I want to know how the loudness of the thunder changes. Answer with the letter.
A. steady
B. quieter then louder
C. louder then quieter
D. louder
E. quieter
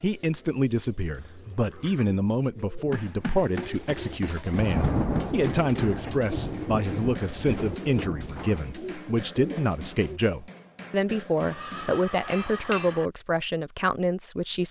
E.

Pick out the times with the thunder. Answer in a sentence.
You can hear the thunder from 4.5 to 8.6 s.